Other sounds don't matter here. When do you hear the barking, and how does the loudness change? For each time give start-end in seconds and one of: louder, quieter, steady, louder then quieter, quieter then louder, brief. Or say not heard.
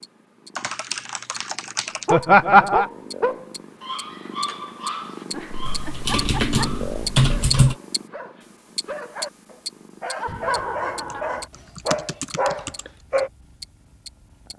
2.0-13.3 quieter then louder.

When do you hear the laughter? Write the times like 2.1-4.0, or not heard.
2.1-2.9, 5.3-6.6, 10.2-11.4.